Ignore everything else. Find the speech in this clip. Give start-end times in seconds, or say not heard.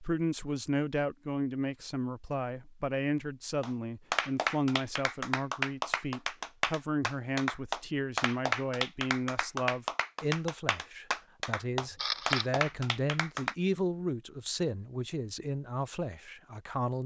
0.0-17.0.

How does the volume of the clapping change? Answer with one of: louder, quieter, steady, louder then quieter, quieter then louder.
steady.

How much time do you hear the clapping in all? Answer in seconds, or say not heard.
10 s.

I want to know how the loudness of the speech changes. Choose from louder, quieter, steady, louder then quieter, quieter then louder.
steady.